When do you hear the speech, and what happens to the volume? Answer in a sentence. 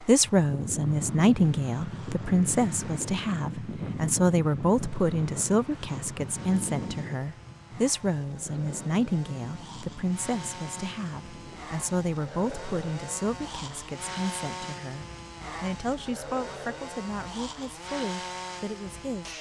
You can hear the speech from 0.1 to 19.3 s, getting quieter.